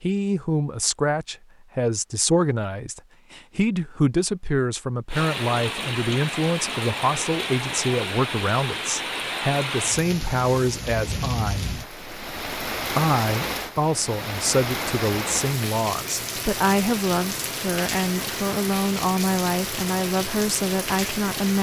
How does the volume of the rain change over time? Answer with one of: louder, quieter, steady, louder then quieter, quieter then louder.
steady.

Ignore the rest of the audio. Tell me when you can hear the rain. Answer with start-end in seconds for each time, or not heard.
5.0-21.5.